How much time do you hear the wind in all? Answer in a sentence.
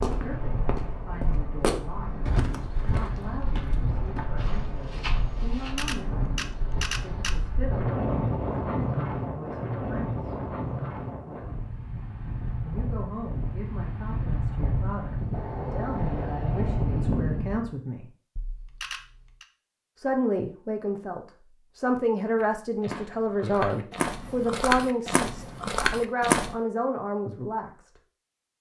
The wind can be heard for 18 seconds in total.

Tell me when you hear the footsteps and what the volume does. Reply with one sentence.
You can hear the footsteps from 0.0 to 5.8 s, getting louder then quieter; and from 22.4 to 26.6 s, getting louder.